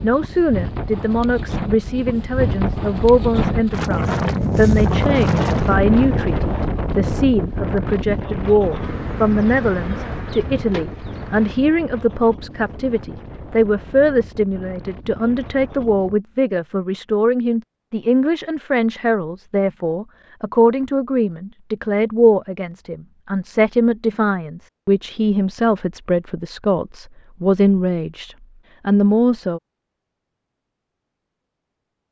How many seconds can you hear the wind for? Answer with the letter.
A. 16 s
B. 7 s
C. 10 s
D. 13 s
A.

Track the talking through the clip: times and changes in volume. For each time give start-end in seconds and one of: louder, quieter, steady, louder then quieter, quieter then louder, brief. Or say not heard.
0.0-29.6 steady.